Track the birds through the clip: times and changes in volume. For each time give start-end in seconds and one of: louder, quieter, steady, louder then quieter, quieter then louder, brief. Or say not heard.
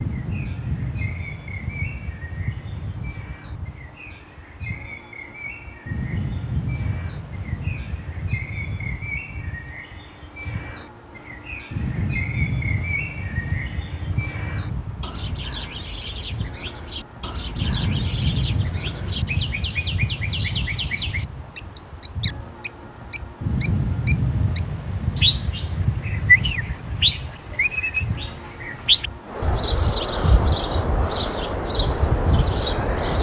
0.0-33.1 louder.